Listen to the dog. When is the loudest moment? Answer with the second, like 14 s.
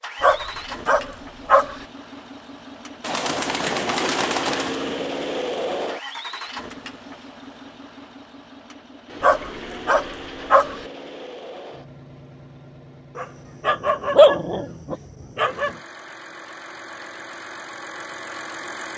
14 s.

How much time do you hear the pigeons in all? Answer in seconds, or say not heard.
2 s.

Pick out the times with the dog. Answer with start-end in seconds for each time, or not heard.
0.2-1.8, 9.2-10.8, 13.2-15.8.